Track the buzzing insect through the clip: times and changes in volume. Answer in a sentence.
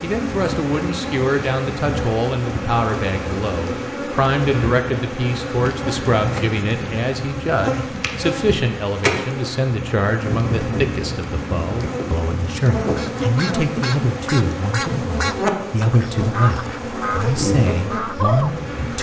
The buzzing insect can be heard from 0.0 to 18.9 s, at a steady volume.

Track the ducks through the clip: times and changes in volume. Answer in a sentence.
You can hear the ducks from 12.8 to 18.9 s, getting quieter then louder.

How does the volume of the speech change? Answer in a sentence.
The loudness of the speech stays about the same.